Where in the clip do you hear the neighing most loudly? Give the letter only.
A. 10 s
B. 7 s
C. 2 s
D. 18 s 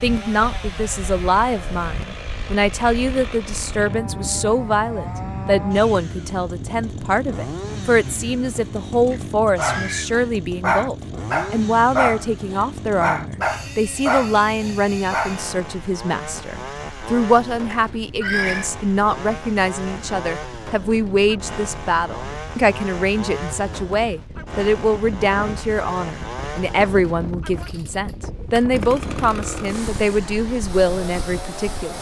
D.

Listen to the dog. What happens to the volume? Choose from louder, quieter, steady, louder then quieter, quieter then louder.
steady.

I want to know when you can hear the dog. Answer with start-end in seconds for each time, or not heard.
9.6-15.3.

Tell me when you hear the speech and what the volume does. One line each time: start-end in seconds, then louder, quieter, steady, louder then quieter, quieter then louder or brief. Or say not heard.
0.0-31.9 steady.